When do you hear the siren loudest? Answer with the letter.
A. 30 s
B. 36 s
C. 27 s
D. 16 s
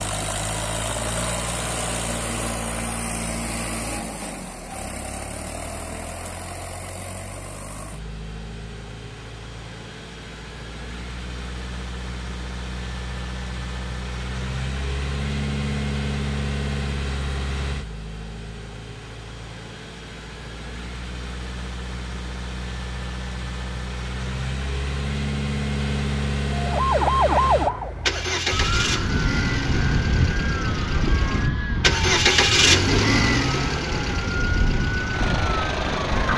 C.